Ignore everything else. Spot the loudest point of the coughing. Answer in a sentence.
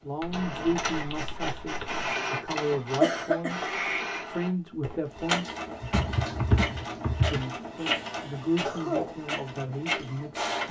The volume of the coughing peaks at 3 seconds.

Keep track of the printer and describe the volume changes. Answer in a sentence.
The loudness of the printer stays about the same.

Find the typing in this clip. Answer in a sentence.
The typing can be heard from 0.2 to 2.1 s and from 5.8 to 7.5 s.